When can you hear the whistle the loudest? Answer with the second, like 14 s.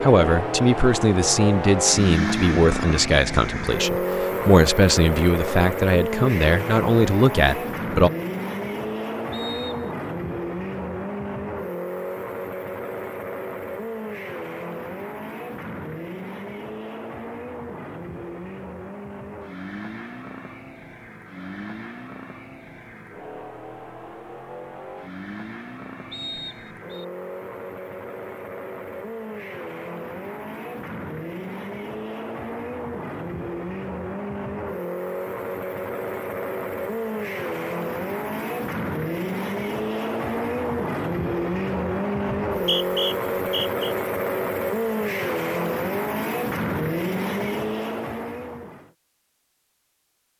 43 s.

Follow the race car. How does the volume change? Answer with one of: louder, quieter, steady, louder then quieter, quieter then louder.
quieter then louder.